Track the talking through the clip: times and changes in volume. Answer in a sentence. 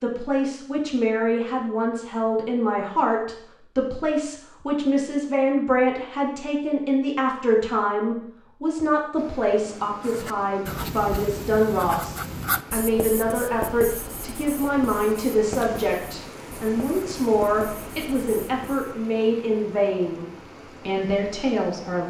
The talking can be heard from 0.0 to 20.2 s, at a steady volume; and briefly from 20.9 to 22.0 s.